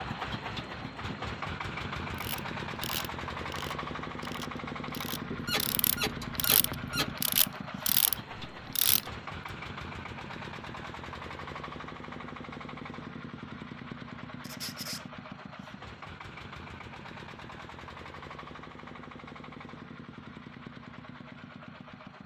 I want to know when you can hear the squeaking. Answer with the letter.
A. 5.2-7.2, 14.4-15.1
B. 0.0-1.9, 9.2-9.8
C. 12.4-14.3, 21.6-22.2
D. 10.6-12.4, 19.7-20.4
A.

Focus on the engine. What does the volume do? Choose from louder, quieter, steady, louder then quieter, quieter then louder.
quieter.